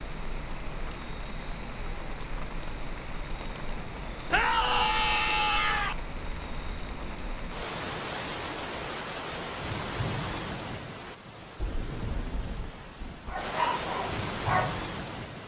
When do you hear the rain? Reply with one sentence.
The rain can be heard from 0.0 to 15.4 s.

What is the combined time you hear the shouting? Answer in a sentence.
You can hear the shouting for 2 seconds altogether.